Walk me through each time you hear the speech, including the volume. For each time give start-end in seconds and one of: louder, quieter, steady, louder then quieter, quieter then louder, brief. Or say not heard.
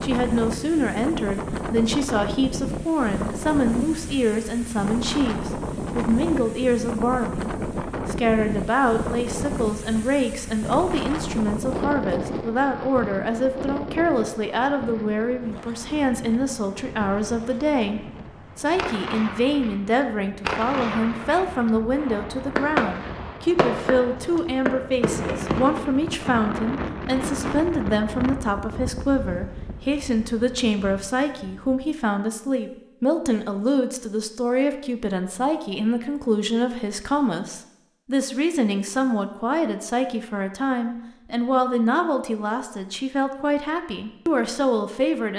0.0-45.3 steady.